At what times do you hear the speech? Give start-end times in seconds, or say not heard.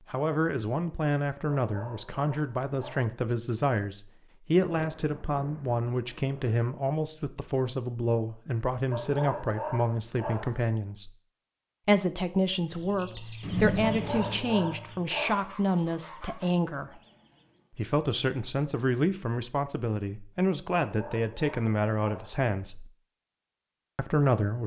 0.1-11.1, 11.8-17.0, 17.8-22.9, 23.9-24.6.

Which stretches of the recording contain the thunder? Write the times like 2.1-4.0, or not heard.
4.7-6.6, 13.4-14.4.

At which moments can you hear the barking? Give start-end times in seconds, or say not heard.
1.6-3.0, 8.9-10.6, 13.8-15.6, 20.9-22.4.